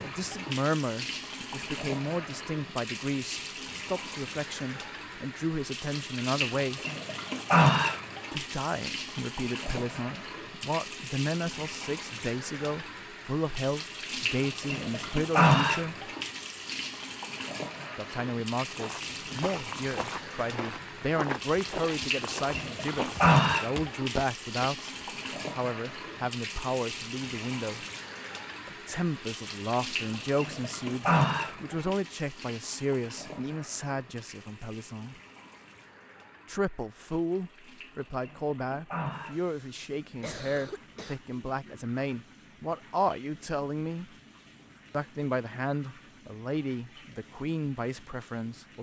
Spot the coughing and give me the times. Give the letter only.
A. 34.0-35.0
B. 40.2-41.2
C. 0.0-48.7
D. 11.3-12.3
B.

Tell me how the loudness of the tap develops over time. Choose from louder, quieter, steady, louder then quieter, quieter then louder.
quieter.